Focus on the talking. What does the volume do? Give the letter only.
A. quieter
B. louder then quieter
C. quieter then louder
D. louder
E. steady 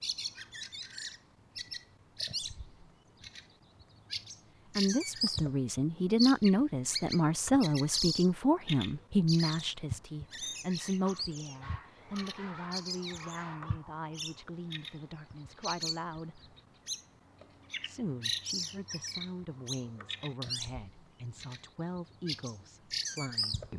A.